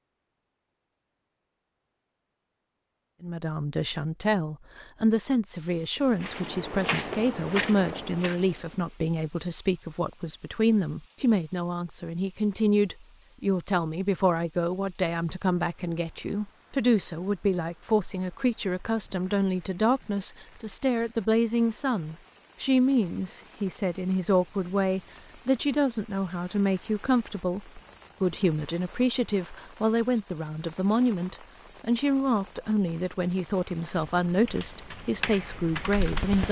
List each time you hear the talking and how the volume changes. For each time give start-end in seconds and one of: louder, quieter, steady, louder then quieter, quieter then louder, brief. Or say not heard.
3.2-36.4 steady.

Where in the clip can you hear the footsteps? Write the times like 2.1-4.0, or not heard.
6.1-8.9.